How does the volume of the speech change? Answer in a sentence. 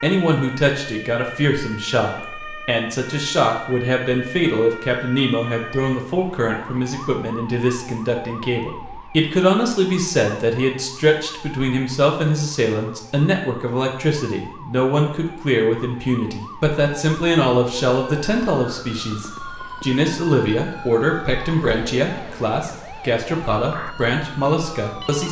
The volume of the speech stays about the same.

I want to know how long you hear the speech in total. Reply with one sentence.
You can hear the speech for 25 seconds altogether.